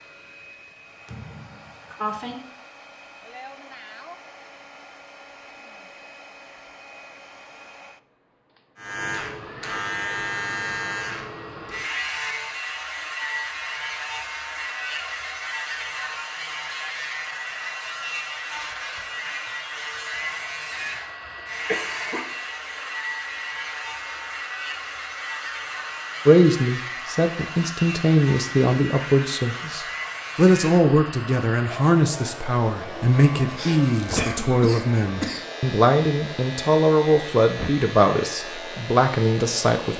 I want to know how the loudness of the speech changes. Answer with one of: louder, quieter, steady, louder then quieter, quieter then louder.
steady.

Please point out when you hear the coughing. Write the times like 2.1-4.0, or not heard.
1.1-2.4, 20.7-22.4, 32.9-35.5.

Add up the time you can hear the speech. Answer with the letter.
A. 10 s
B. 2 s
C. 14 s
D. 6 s
C.